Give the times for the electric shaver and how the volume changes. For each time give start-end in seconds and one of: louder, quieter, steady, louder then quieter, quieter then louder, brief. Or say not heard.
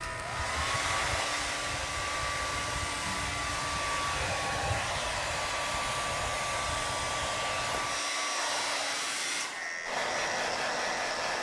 0.0-11.3 steady.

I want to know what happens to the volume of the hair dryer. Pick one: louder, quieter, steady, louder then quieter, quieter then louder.
steady.